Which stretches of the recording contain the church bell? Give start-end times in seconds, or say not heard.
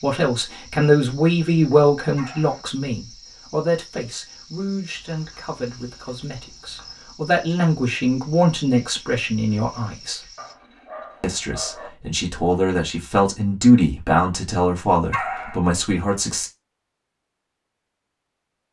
not heard.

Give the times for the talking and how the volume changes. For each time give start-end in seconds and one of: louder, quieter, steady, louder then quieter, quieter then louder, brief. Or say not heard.
0.0-10.2 quieter then louder
11.2-16.5 louder then quieter.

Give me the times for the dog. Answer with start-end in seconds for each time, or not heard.
2.1-2.6, 4.9-7.0, 10.3-11.9, 15.1-15.6.